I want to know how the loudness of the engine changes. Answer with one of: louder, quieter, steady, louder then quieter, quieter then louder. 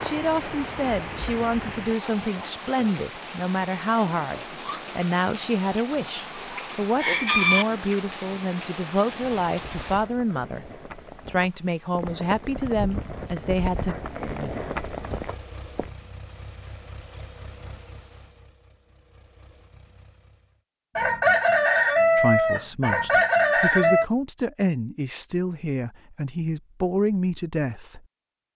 quieter.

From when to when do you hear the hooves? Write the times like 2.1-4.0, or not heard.
0.0-1.9, 9.2-15.9.